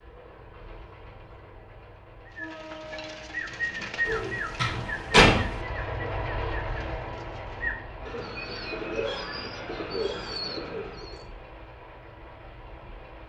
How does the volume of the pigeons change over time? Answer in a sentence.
The loudness of the pigeons goes down, then up.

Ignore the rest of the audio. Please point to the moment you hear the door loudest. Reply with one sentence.
The volume of the door peaks at 5 seconds.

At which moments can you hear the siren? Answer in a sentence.
The siren can't be heard in this clip.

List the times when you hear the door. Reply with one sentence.
You can hear the door from 4.0 to 5.6 s.